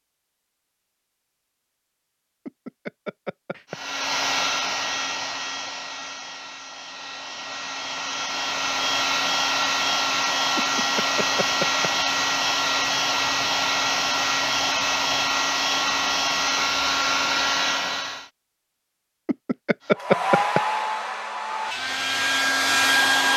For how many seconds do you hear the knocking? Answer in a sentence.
You can hear the knocking for 4 seconds altogether.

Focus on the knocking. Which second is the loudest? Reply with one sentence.
The loudest moment of the knocking is at 20 seconds.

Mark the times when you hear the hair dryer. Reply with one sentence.
You can hear the hair dryer from 3.7 to 18.3 s and from 19.9 to 23.3 s.